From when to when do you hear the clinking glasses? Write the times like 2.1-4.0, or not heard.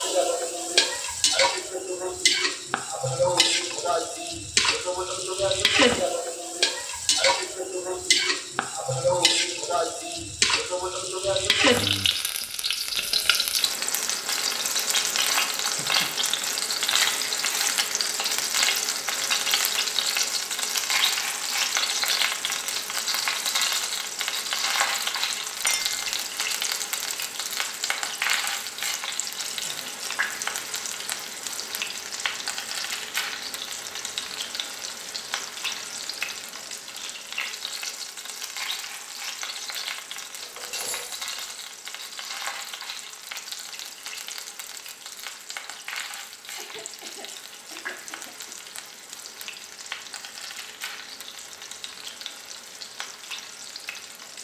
3.4-3.8, 25.6-26.1, 40.4-41.4.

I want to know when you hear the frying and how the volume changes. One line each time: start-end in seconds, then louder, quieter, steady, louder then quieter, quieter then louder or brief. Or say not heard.
0.0-54.3 quieter.